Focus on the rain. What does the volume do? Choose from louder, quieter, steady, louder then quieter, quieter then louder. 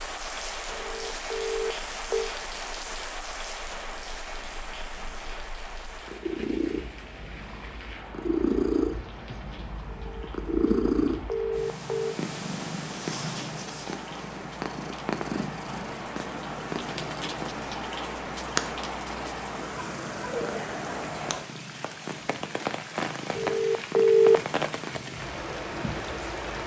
quieter then louder.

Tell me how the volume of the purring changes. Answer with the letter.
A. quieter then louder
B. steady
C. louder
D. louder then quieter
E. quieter
D.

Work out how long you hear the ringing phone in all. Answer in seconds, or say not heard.
5 s.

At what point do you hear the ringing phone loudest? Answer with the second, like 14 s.
24 s.